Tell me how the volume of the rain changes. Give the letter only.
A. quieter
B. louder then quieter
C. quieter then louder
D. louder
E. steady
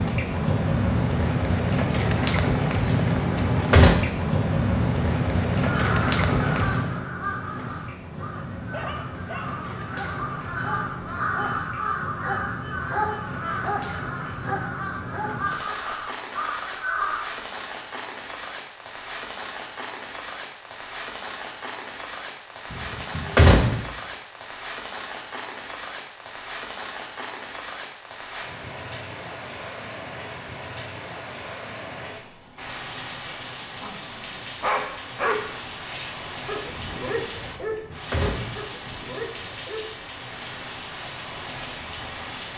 A.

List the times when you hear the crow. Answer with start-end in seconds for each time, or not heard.
5.7-17.4.